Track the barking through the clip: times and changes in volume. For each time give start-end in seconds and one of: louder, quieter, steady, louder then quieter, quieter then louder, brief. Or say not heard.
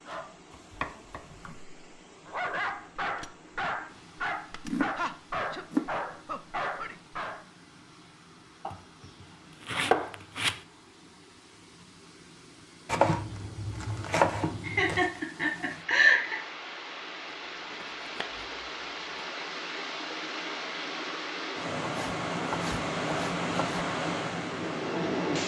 0.1-7.5 louder.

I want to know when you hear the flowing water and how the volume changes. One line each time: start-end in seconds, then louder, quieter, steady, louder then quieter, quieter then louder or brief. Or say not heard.
0.0-25.4 louder.